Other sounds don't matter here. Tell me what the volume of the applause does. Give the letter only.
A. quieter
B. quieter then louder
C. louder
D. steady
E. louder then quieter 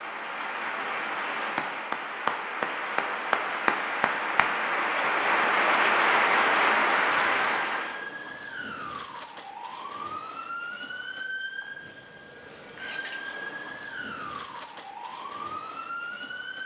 C.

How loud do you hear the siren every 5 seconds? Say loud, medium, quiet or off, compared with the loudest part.
off, loud, loud, loud.